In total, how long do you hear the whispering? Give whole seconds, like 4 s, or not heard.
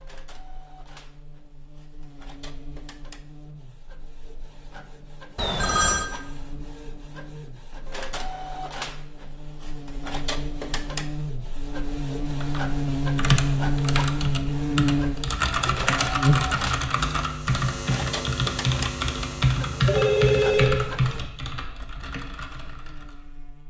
not heard.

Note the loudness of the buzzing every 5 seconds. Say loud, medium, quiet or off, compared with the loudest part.
quiet, quiet, loud, loud, quiet.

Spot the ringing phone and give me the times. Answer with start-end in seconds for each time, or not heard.
5.3-6.1, 19.8-20.9.